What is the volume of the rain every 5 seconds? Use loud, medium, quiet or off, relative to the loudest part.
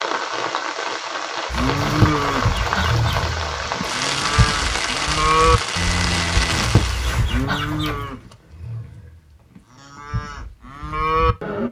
loud, loud, off.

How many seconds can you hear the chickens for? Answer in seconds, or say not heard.
3 s.